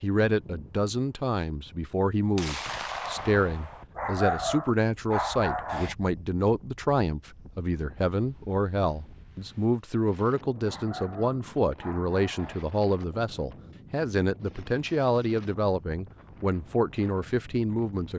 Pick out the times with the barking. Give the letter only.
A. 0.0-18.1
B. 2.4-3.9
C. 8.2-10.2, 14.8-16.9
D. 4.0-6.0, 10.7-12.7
D.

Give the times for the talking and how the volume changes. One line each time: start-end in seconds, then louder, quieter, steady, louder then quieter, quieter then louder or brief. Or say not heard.
0.0-18.1 steady.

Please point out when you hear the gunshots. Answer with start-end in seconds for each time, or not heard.
2.4-3.9.